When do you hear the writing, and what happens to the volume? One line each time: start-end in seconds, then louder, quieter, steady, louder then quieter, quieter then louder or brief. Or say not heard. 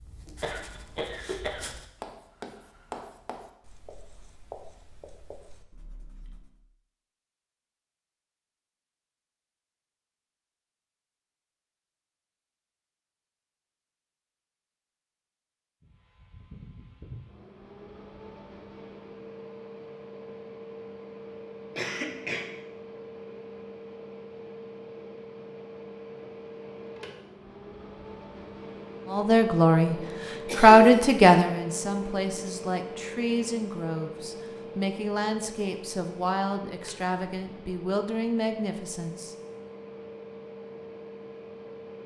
0.0-6.6 louder then quieter.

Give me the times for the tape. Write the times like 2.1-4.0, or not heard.
not heard.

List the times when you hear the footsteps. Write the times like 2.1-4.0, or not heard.
not heard.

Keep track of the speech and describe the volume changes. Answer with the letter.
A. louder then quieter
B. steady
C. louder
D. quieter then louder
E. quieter
E.